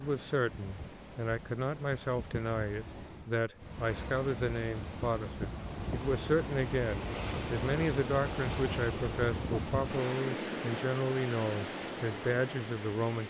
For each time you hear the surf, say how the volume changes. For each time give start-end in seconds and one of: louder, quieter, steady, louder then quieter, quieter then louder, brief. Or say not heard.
0.0-13.2 louder.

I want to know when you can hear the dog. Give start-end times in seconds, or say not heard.
not heard.